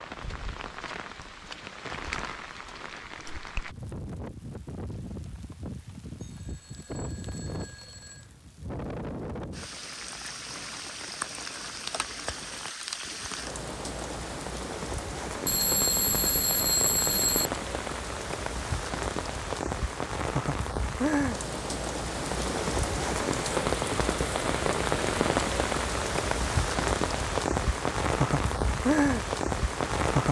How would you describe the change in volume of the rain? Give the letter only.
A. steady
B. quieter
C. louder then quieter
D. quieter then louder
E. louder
E.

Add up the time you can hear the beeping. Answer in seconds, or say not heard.
4 s.